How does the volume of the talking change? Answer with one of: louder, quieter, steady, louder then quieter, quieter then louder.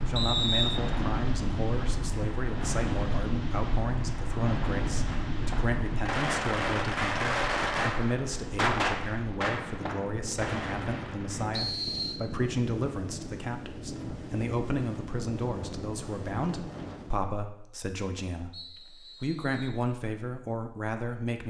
steady.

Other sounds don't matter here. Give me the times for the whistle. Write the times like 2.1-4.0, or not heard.
0.1-0.8, 11.5-12.2, 18.5-19.8.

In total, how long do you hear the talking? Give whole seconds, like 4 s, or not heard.
21 s.